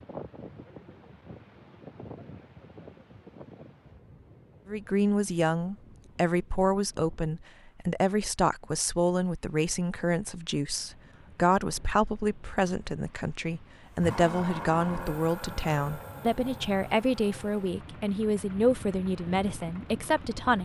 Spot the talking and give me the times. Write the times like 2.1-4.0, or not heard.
4.7-20.6.